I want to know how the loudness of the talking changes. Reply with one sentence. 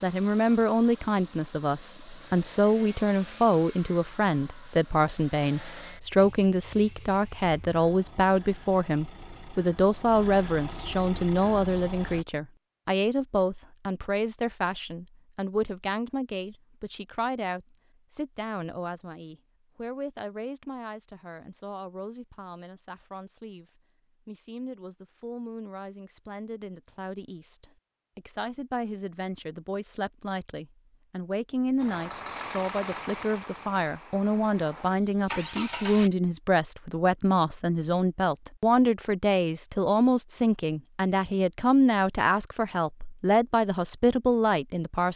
The volume of the talking goes down, then up.